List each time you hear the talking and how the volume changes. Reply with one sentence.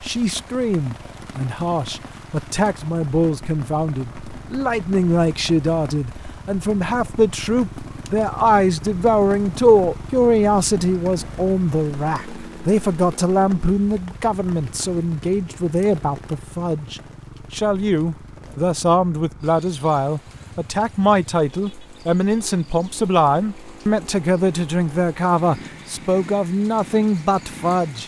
You can hear the talking from 0.0 to 28.0 s, at a steady volume.